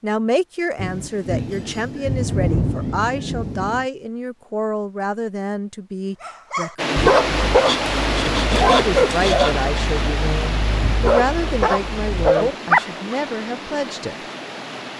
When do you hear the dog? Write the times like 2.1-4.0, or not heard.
6.2-13.2.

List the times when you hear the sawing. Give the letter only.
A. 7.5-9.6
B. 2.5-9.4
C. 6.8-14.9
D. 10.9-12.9
A.